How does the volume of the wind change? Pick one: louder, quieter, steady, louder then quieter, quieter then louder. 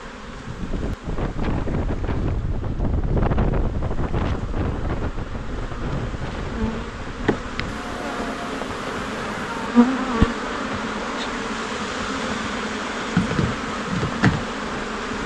quieter.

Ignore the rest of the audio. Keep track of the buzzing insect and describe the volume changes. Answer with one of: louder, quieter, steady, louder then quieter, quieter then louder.
louder.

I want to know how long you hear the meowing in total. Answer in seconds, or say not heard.
2 s.